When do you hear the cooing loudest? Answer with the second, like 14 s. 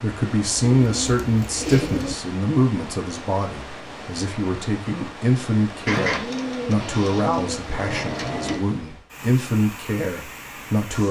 6 s.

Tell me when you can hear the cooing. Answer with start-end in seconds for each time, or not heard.
0.8-2.1, 5.8-8.6.